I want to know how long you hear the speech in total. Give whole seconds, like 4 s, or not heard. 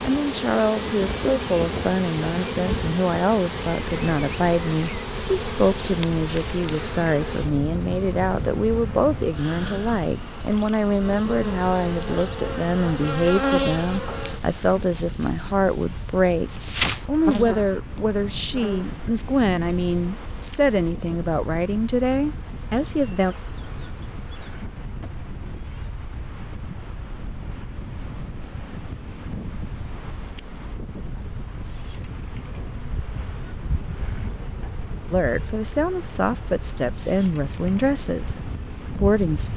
27 s.